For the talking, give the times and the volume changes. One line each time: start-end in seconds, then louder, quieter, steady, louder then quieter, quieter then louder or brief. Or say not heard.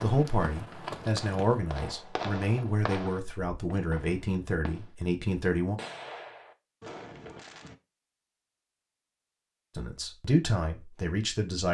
0.0-5.8 steady
9.8-11.6 brief.